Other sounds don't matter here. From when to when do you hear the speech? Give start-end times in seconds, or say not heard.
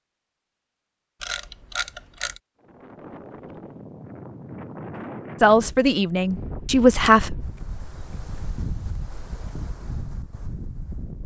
5.4-7.3.